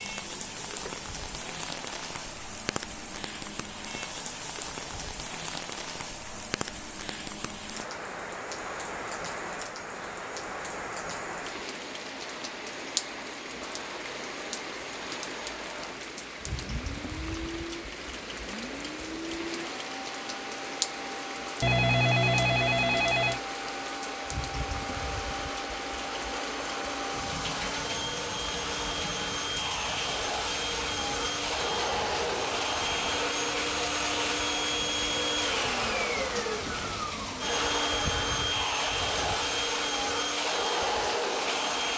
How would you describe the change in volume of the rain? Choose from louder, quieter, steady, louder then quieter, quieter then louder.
steady.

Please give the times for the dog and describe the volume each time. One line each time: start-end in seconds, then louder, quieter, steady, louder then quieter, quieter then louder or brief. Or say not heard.
not heard.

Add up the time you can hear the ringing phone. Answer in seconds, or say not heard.
2 s.